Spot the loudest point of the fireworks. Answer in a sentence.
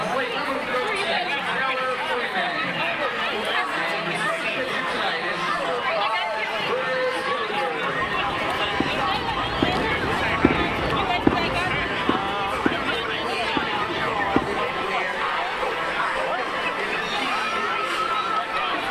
The volume of the fireworks peaks at 11 seconds.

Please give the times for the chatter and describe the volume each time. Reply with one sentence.
The chatter can be heard from 0.0 to 18.8 s, at a steady volume.